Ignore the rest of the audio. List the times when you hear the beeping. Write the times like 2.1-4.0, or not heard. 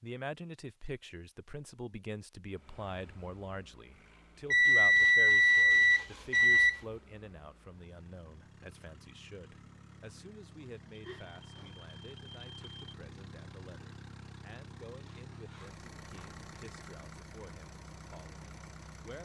4.5-6.8, 10.9-12.8.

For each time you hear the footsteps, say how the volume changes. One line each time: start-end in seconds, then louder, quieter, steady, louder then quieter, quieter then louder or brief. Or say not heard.
not heard.